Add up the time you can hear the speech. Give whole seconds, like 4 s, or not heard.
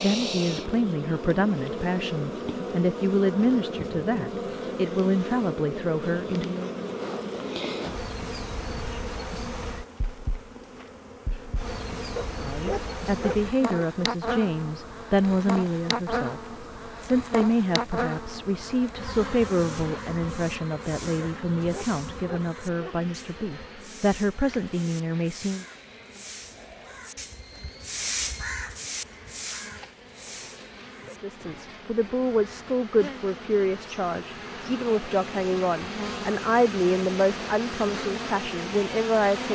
28 s.